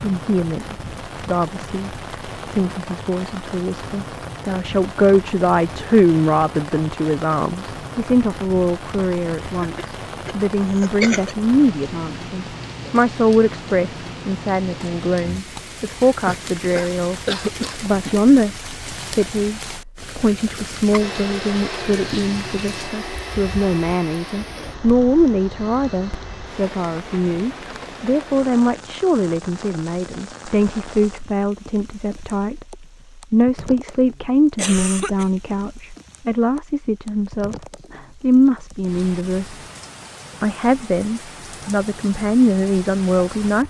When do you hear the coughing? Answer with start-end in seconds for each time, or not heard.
9.6-11.3, 16.2-18.2, 34.5-35.3.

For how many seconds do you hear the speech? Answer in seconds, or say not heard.
43 s.